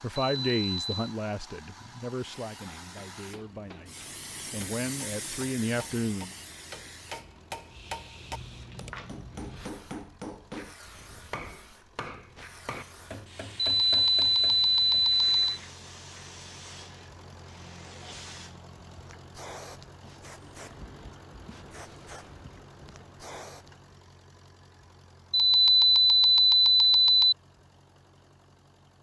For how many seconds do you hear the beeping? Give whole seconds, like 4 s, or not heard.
5 s.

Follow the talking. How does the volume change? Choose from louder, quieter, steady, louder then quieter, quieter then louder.
quieter then louder.